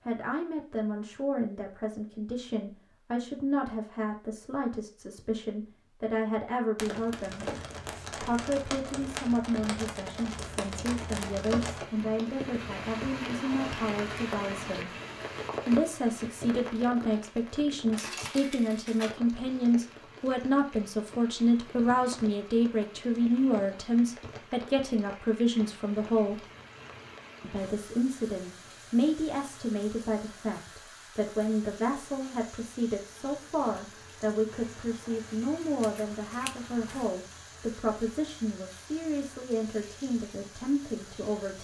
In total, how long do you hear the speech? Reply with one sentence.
The speech can be heard for 39 seconds in total.